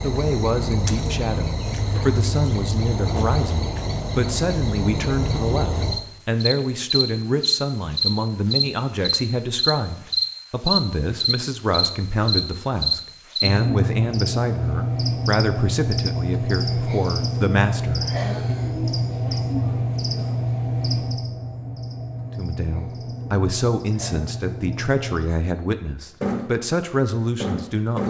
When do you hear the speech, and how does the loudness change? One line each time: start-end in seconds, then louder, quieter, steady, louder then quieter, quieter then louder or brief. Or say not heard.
0.0-18.6 steady
22.4-28.0 steady.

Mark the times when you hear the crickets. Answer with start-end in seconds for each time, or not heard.
0.0-28.0.